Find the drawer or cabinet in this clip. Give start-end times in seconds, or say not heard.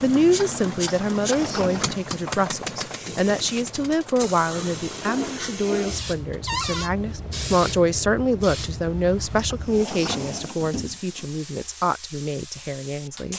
1.1-1.9, 6.5-6.9, 9.3-11.3.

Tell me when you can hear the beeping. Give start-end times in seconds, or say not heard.
not heard.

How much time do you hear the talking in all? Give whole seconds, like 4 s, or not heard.
13 s.